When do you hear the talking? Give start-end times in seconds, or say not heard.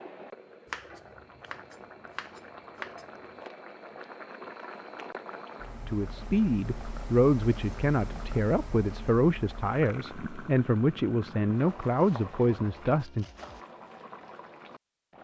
5.8-13.2.